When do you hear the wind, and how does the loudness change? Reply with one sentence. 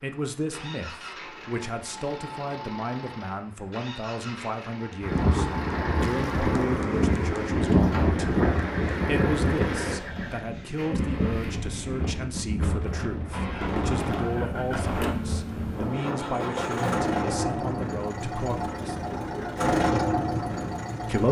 You can hear the wind from 5.0 to 21.0 s, getting quieter.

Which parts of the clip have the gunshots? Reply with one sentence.
You can hear the gunshots from 13.4 to 15.1 s.